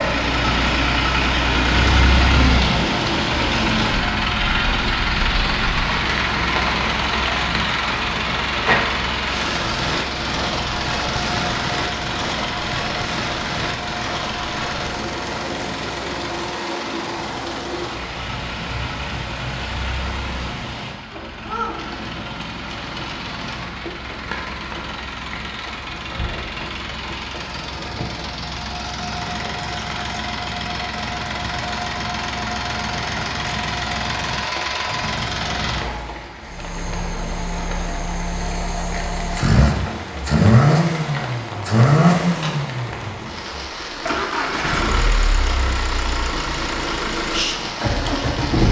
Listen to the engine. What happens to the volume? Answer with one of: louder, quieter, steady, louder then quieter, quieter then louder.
quieter then louder.